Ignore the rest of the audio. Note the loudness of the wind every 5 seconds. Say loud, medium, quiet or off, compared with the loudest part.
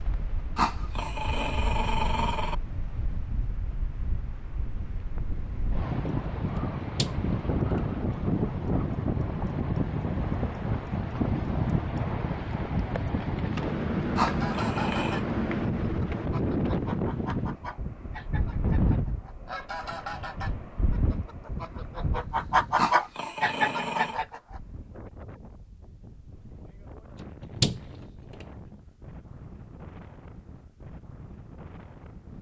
quiet, loud, loud, loud, medium, quiet, quiet.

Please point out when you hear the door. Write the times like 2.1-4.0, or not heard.
6.5-7.8, 27.2-28.4.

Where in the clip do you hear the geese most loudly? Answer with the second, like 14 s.
23 s.